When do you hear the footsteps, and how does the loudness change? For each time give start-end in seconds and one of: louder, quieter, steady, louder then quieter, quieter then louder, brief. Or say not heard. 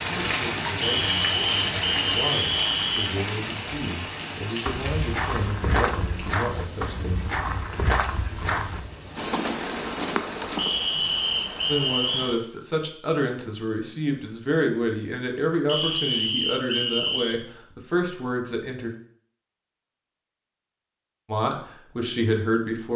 4.7-10.8 steady.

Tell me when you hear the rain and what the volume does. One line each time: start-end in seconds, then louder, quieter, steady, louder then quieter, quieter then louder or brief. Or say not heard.
0.0-12.4 quieter.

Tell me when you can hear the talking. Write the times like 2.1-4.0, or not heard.
0.0-7.2, 11.7-18.9, 21.2-22.9.